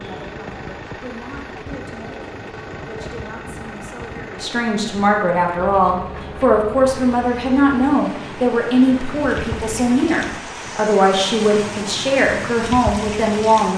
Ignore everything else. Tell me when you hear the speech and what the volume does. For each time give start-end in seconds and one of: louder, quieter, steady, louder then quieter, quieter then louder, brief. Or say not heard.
0.0-13.7 louder.